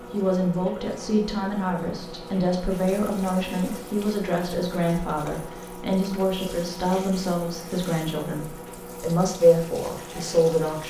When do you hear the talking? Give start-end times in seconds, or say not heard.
0.1-10.8.